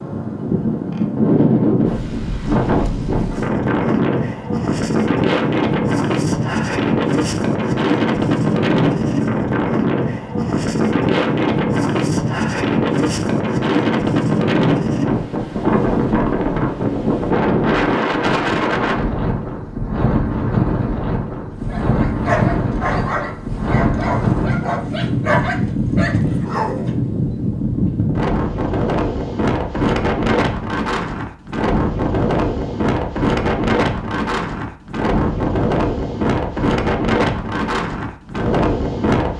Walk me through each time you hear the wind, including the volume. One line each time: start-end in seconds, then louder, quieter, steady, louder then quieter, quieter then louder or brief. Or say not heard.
0.0-39.3 steady.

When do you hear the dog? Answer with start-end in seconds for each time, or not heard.
21.5-26.9.